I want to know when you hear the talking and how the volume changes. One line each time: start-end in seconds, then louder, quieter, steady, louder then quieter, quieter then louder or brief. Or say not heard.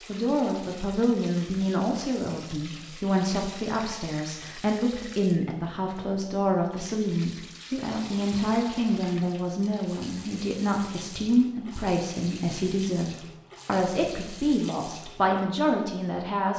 0.1-16.5 steady.